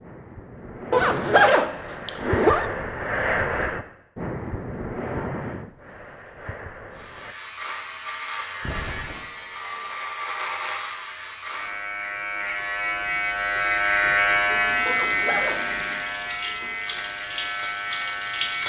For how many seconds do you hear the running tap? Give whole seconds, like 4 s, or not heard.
4 s.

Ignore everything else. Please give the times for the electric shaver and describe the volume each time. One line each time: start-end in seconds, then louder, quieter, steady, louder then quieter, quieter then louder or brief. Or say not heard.
6.9-18.6 louder then quieter.